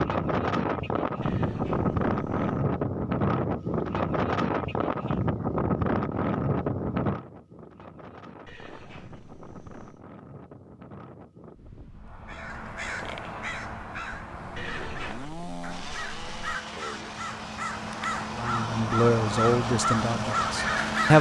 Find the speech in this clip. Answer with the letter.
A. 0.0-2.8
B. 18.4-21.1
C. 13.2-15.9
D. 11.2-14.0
B.